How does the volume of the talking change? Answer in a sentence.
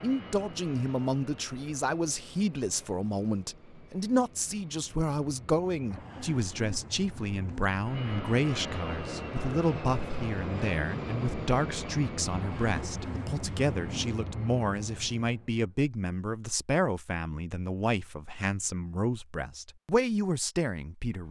The loudness of the talking stays about the same.